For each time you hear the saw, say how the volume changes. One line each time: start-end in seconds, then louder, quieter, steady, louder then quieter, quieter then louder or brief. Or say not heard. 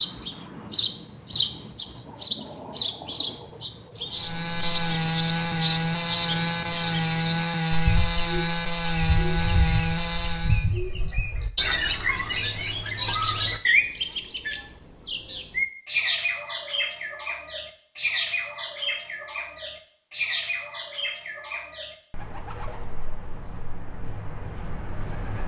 4.1-10.7 steady.